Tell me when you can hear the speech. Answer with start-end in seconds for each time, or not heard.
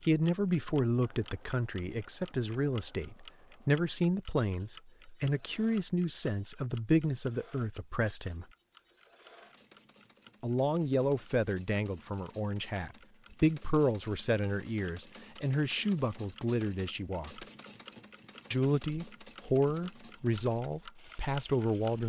0.1-8.4, 10.4-17.4, 18.5-22.0.